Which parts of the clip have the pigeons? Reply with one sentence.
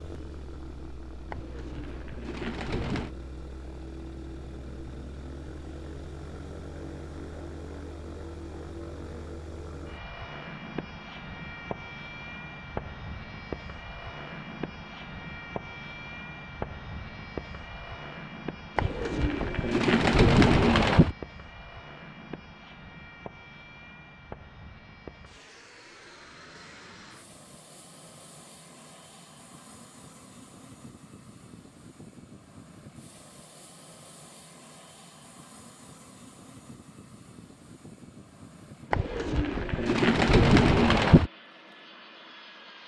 The pigeons can be heard from 1.3 to 3.1 s, from 18.8 to 21.1 s and from 38.9 to 41.3 s.